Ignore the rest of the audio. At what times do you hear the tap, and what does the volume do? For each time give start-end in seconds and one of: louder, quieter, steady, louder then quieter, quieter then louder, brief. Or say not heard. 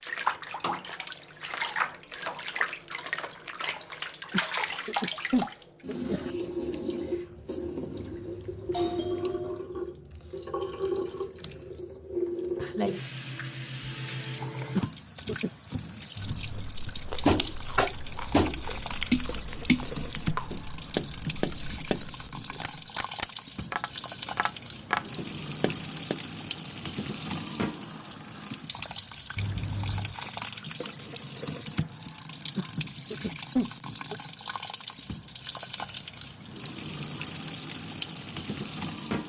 0.0-39.2 steady.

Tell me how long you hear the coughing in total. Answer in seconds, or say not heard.
5 s.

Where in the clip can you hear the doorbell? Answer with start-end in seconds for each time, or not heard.
8.0-9.6, 16.1-16.8, 29.4-30.2.